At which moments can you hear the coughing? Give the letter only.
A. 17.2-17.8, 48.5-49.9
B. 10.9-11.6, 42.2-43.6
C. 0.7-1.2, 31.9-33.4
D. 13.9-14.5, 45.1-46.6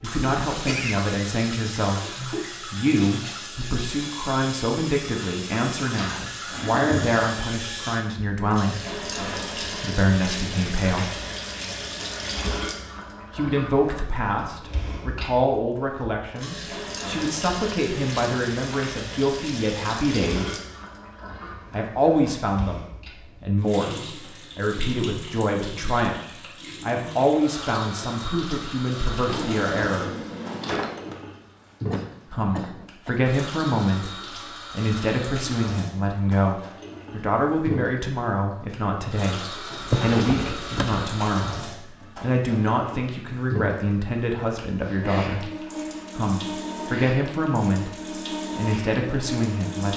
C.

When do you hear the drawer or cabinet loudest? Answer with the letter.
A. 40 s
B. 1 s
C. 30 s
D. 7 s
A.